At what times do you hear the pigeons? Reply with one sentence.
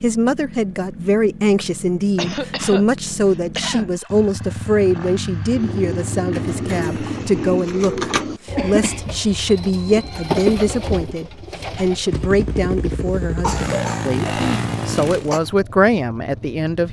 You can hear the pigeons from 5.5 to 12.9 s.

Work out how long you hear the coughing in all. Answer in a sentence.
You can hear the coughing for 5 seconds altogether.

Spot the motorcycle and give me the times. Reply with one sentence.
The motorcycle can be heard from 0.0 to 7.6 s and from 12.1 to 16.8 s.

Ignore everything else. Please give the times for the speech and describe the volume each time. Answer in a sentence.
The speech can be heard from 0.0 to 16.8 s, at a steady volume.